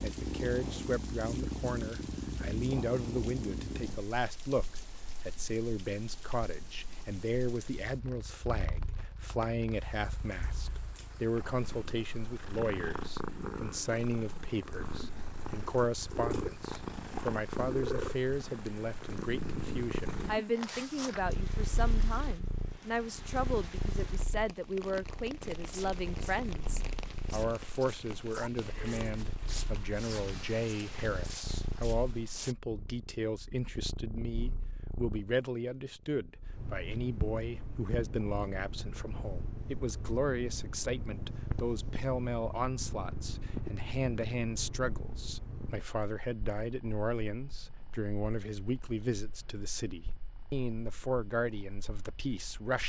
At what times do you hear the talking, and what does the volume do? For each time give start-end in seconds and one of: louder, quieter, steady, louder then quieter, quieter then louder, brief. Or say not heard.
0.0-52.8 steady.